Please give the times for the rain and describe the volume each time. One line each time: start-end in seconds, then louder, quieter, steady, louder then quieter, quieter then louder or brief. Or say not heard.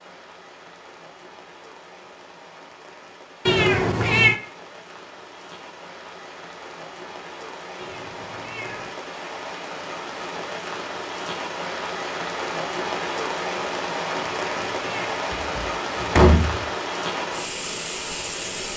0.0-18.7 louder.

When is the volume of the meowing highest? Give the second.
4 s.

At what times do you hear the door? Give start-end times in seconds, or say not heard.
15.3-16.6.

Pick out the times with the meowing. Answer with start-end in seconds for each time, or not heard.
3.5-4.4, 7.8-8.9, 14.2-15.2.